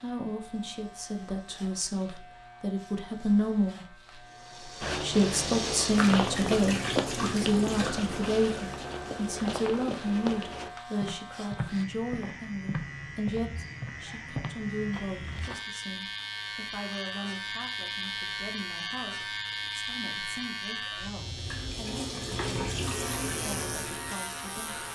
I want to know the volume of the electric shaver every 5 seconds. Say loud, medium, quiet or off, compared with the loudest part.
quiet, medium, medium, loud, loud.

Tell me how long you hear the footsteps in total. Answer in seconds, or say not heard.
11 s.